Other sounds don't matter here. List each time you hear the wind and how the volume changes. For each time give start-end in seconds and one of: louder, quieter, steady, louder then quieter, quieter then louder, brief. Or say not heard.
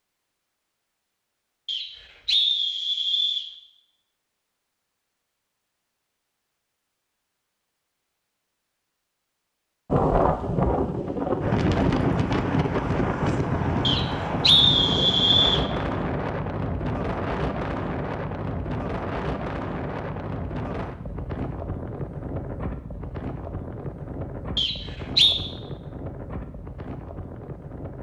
9.9-27.9 quieter.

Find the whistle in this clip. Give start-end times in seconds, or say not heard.
1.6-3.5, 13.8-15.7, 24.6-25.4.